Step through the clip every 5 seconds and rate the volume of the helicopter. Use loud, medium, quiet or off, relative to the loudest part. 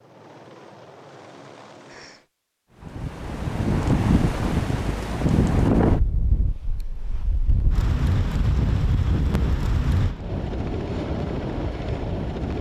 quiet, off, loud.